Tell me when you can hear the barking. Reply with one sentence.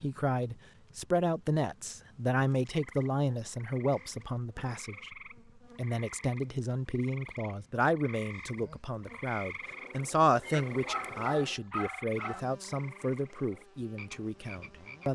You can hear the barking from 10.4 to 12.4 s.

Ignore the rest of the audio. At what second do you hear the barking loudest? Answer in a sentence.
The volume of the barking peaks at 12 seconds.